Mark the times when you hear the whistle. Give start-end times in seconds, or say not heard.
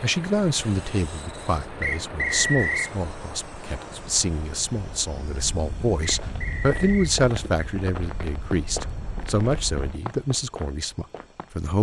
1.8-2.9, 6.0-7.2.